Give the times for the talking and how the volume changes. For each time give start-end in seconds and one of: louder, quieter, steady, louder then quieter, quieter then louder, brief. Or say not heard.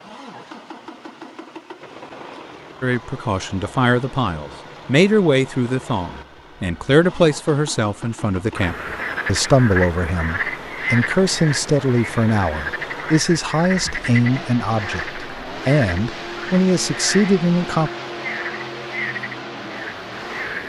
2.8-17.9 steady.